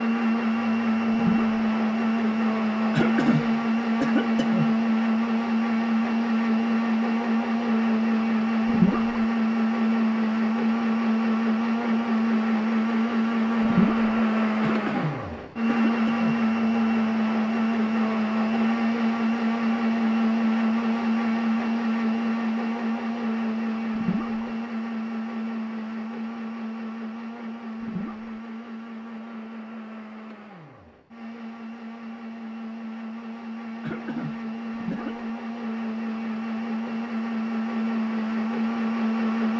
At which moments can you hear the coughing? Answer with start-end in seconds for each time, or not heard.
2.9-4.8, 14.6-16.4, 33.8-35.2.